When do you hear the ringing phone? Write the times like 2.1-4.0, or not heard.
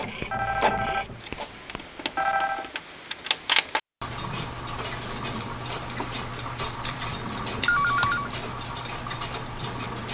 0.2-2.7, 7.5-8.3.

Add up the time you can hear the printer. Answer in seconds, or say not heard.
2 s.